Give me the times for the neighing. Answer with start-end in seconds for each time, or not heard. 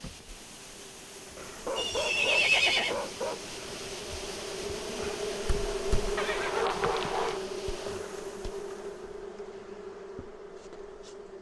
1.8-3.0, 6.2-7.4.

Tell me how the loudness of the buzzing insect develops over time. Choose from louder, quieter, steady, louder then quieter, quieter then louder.
louder then quieter.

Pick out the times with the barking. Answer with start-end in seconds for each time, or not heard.
1.4-4.0, 6.5-7.4.